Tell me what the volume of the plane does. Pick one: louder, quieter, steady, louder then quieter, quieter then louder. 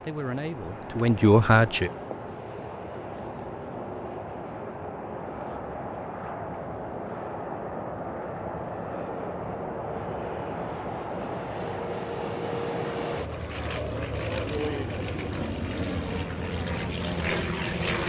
louder.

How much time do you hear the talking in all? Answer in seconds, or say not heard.
2 s.